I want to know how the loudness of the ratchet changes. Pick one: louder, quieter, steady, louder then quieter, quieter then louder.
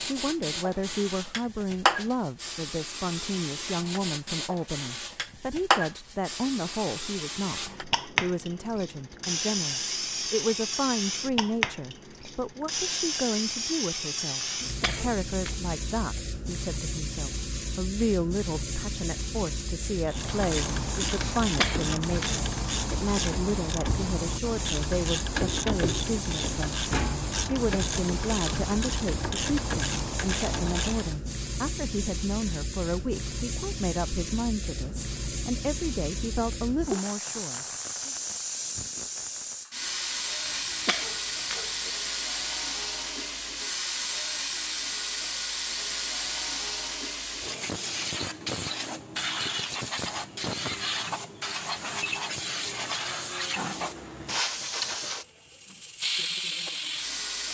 steady.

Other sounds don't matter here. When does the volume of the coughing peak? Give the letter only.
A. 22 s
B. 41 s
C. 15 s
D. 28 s
A.